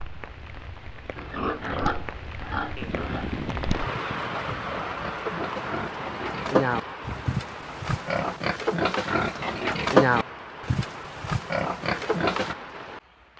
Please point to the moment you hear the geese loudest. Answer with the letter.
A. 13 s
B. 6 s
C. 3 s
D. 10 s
C.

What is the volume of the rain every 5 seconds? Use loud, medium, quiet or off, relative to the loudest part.
loud, loud, medium.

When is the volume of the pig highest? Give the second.
10 s.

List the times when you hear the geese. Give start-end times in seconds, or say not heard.
2.8-4.8.